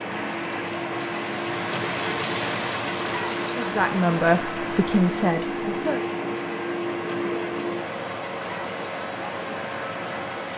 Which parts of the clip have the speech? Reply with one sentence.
The speech can be heard from 3.5 to 6.0 s.